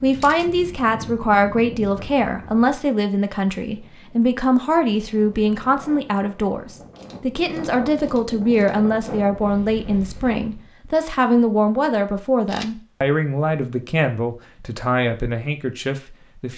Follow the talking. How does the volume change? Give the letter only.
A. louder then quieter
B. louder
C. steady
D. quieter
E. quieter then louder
C.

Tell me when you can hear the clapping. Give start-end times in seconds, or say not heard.
not heard.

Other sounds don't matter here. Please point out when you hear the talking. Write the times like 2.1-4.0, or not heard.
0.0-16.5.